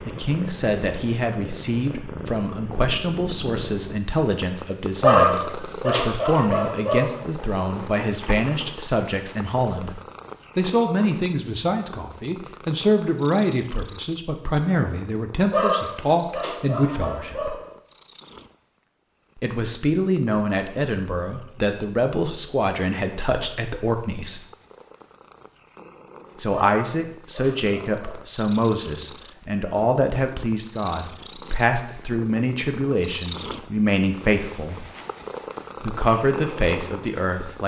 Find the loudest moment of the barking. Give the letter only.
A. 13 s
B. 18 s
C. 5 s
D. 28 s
C.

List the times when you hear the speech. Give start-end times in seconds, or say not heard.
0.1-17.6, 19.4-24.4, 26.4-34.9, 35.8-37.6.